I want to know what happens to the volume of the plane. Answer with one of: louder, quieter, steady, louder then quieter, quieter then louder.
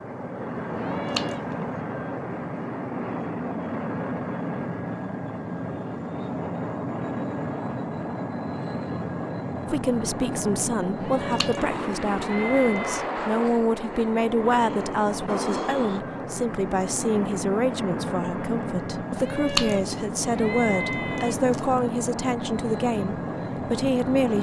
steady.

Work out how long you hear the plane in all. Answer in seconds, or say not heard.
24 s.